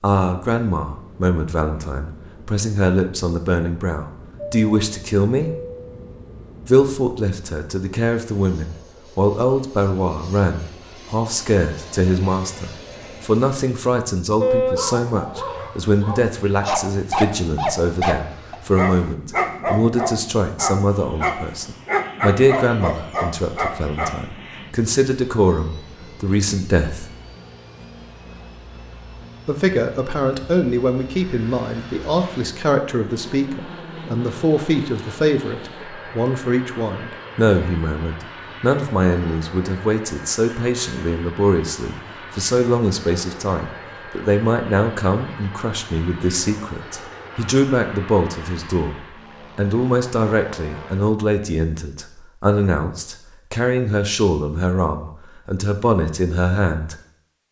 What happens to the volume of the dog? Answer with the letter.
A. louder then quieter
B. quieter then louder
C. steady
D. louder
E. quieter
D.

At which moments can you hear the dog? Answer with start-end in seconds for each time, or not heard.
14.4-24.1.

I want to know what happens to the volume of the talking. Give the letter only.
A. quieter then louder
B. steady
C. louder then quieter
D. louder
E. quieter
B.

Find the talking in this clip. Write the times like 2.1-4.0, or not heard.
0.0-5.5, 6.7-27.1, 29.4-57.0.